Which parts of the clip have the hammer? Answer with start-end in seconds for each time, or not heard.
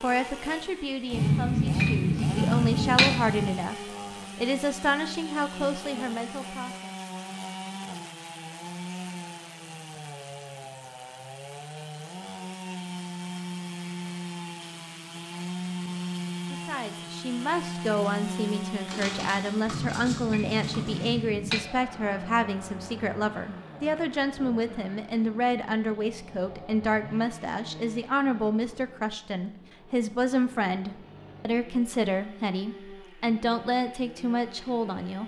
1.1-3.6, 19.6-21.6.